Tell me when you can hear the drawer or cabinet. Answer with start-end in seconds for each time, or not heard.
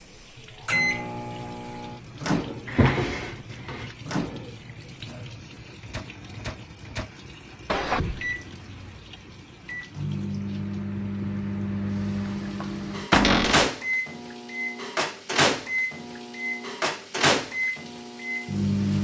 2.6-3.9, 7.7-8.3, 13.1-13.7.